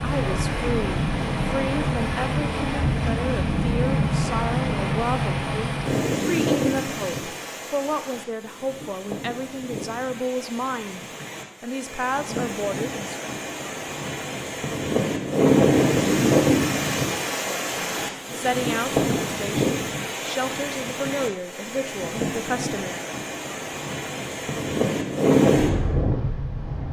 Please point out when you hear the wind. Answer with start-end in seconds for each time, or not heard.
0.0-26.8.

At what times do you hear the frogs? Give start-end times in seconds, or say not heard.
not heard.